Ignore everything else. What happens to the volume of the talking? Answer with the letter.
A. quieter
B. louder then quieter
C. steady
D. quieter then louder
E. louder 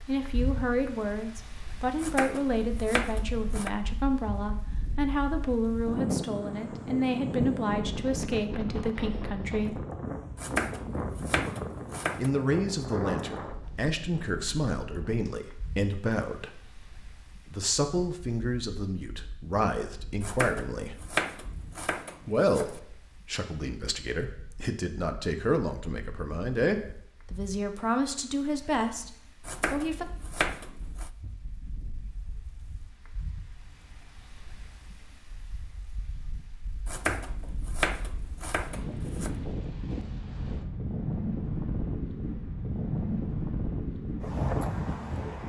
C.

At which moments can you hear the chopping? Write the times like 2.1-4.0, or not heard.
1.9-3.7, 10.3-12.3, 20.2-22.8, 29.4-31.1, 36.9-39.4.